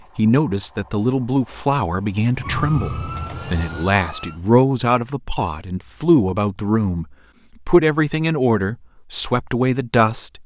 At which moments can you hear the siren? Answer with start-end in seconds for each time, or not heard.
2.4-4.4.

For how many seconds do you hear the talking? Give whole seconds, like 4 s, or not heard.
10 s.